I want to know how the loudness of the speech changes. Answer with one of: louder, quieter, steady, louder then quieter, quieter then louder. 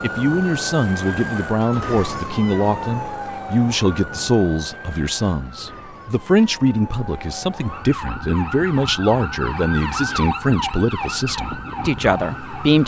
steady.